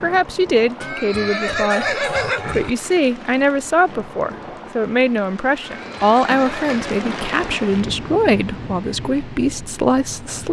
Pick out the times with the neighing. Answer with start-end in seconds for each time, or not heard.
0.8-2.7, 5.6-7.0.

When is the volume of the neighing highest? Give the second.
2 s.